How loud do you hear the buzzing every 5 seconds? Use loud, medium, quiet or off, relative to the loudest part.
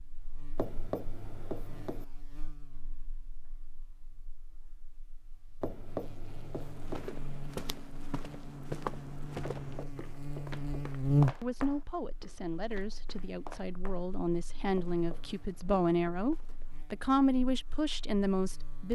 quiet, quiet, loud, quiet.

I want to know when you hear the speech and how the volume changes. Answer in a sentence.
You can hear the speech from 11.4 to 18.8 s, getting louder.